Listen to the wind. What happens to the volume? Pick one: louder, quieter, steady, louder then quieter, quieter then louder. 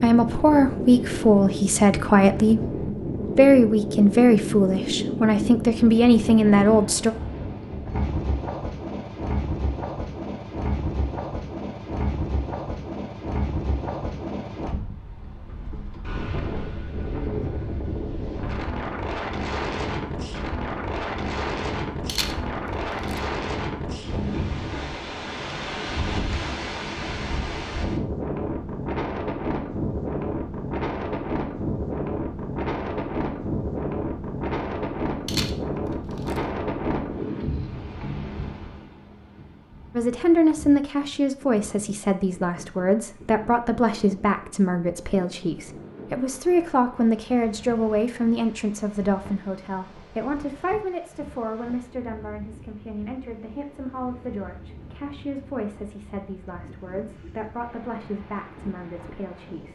quieter.